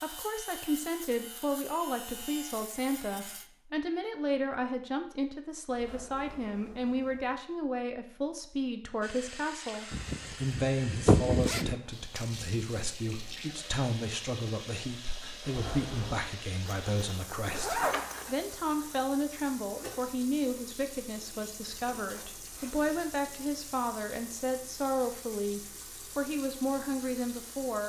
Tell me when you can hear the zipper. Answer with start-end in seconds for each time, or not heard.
9.9-11.8, 16.6-18.4.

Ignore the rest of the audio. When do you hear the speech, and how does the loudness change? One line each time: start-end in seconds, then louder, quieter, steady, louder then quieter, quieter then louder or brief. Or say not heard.
0.0-27.8 steady.